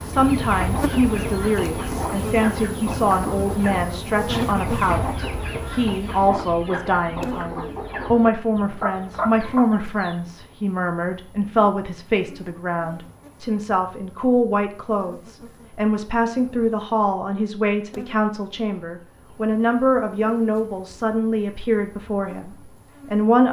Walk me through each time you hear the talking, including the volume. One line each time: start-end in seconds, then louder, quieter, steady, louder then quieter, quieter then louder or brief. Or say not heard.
0.0-23.4 steady.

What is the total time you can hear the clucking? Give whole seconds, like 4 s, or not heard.
10 s.